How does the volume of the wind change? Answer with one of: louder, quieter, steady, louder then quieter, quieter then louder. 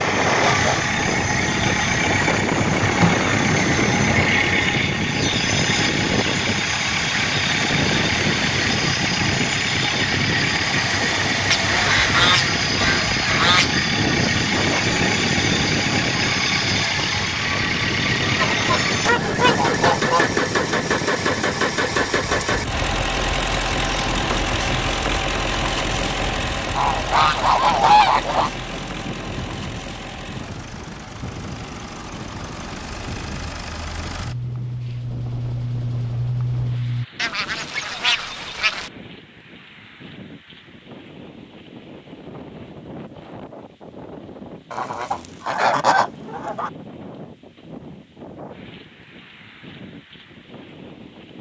quieter.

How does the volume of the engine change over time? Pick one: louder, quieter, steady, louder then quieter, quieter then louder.
quieter.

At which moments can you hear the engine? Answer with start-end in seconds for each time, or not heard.
0.0-37.0.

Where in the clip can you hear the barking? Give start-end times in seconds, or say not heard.
not heard.